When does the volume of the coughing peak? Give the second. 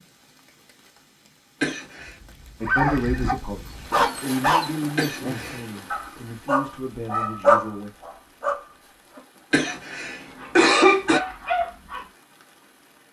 11 s.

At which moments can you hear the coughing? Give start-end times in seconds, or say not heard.
1.6-2.1, 5.0-5.8, 9.5-11.2.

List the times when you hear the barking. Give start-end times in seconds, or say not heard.
2.6-12.1.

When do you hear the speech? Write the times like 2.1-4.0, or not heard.
2.6-7.9.